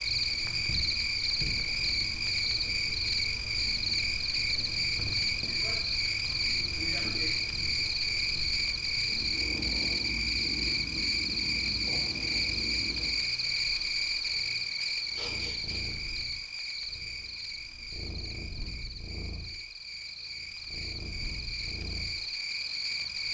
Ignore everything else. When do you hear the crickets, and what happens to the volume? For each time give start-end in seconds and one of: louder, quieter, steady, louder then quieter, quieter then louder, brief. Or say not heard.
0.0-23.3 quieter.